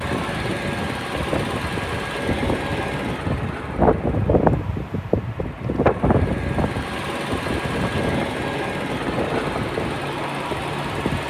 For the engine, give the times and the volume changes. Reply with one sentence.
The engine can be heard from 0.0 to 11.2 s, getting quieter then louder.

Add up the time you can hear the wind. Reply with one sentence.
You can hear the wind for 11 seconds altogether.